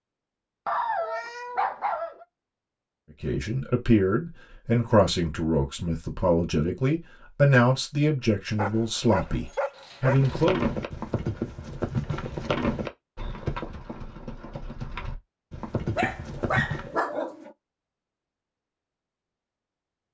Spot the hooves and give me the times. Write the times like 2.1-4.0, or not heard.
10.1-16.9.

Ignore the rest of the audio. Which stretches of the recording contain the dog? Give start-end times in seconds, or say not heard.
0.7-2.2, 8.6-10.4, 15.9-17.5.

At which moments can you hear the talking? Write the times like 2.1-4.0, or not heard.
3.2-10.6.